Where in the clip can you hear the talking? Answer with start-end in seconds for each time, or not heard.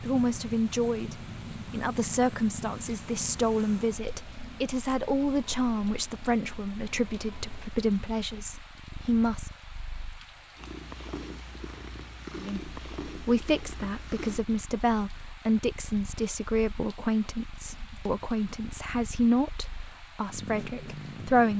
0.0-9.5, 12.3-21.5.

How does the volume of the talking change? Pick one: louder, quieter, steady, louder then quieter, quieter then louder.
steady.